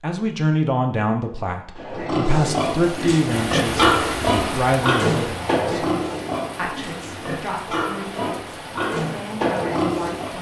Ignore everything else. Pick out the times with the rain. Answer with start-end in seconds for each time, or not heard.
2.5-10.3.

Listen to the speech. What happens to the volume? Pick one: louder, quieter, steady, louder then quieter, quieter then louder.
quieter.